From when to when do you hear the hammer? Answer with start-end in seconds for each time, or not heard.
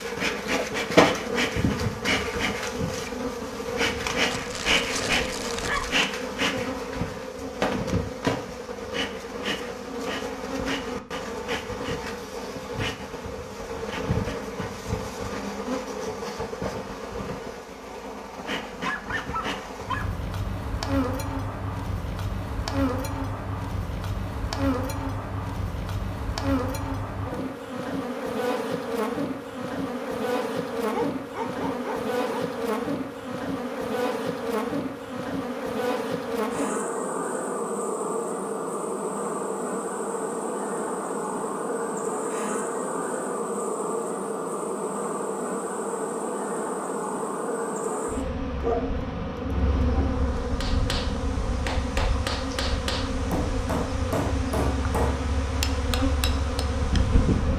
50.4-56.6.